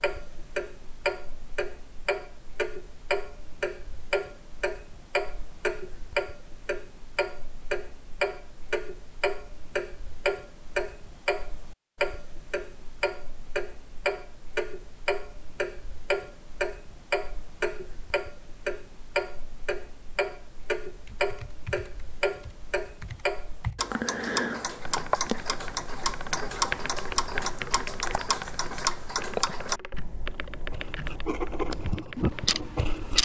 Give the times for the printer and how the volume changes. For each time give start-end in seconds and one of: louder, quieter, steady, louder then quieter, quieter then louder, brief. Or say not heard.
not heard.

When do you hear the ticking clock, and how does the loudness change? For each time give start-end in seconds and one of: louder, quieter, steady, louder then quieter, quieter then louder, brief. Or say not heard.
0.0-33.2 steady.